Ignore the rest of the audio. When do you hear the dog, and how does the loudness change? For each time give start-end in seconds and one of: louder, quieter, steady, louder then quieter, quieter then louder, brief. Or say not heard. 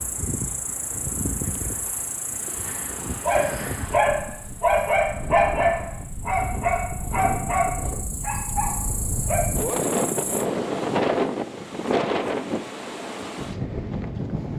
3.2-9.5 quieter.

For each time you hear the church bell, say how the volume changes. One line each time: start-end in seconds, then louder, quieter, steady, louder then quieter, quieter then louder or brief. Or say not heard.
not heard.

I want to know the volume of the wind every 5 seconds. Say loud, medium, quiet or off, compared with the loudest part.
medium, medium, loud.